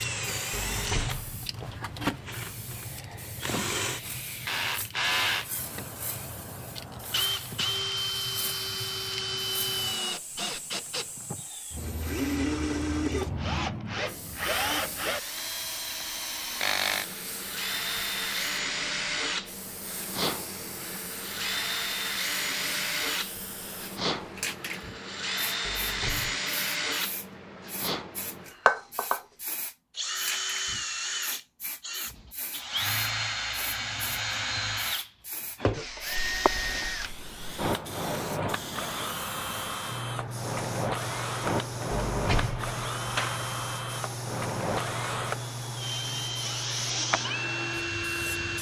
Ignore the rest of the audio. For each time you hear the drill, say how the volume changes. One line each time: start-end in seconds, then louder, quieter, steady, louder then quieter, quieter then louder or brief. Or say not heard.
0.0-48.5 steady.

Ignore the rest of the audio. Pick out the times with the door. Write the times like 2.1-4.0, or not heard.
0.5-1.8, 25.6-26.4, 41.9-43.5.